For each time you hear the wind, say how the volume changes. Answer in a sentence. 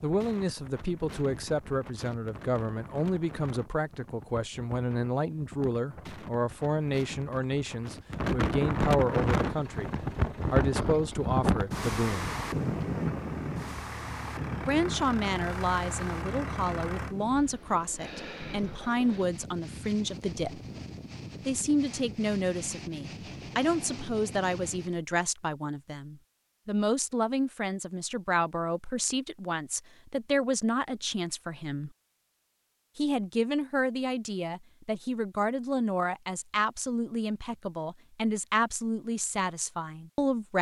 You can hear the wind from 0.0 to 25.0 s, getting louder then quieter.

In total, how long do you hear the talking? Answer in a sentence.
The talking can be heard for 36 seconds in total.